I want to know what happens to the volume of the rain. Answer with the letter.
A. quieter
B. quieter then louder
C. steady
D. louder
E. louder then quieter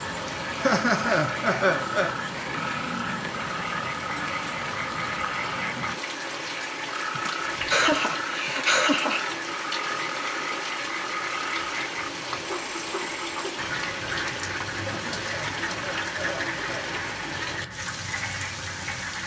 C.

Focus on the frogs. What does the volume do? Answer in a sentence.
The volume of the frogs stays about the same.